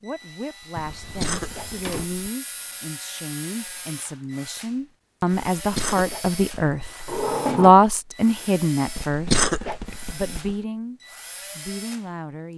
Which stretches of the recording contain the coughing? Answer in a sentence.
You can hear the coughing from 0.8 to 2.3 s, from 5.5 to 6.8 s and from 8.8 to 10.6 s.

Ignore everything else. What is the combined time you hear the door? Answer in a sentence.
The door can be heard for 2 seconds in total.